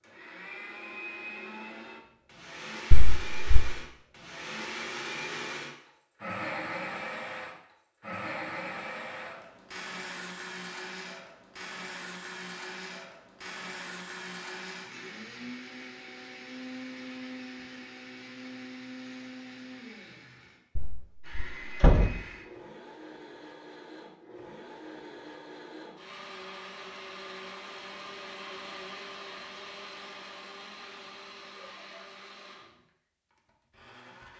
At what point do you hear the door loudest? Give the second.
22 s.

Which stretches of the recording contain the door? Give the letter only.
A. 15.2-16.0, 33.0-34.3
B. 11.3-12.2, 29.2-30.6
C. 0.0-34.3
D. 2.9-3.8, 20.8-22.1
D.